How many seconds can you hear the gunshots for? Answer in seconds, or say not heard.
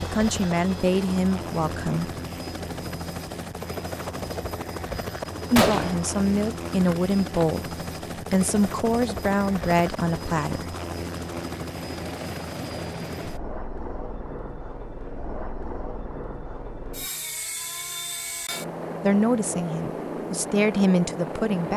2 s.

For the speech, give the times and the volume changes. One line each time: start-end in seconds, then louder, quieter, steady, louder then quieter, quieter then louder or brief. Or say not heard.
0.0-2.1 brief
5.5-10.8 steady
19.0-21.7 brief.